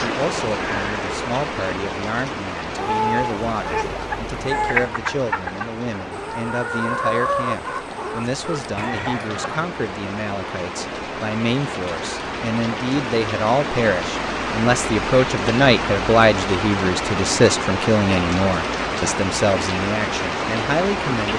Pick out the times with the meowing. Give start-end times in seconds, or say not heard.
2.8-4.9.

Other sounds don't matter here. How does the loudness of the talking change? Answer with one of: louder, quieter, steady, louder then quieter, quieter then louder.
louder.